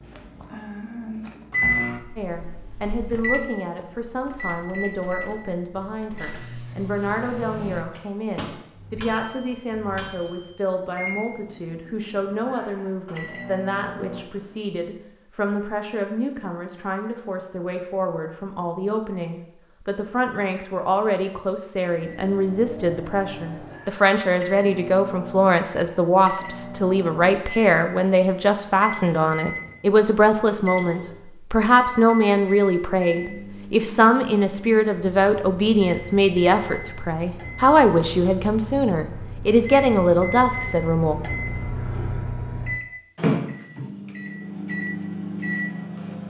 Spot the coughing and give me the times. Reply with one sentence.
The coughing can't be heard in this clip.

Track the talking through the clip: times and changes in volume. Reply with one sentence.
You can hear the talking from 2.1 to 41.1 s, getting louder.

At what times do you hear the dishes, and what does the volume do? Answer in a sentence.
You can't hear the dishes here.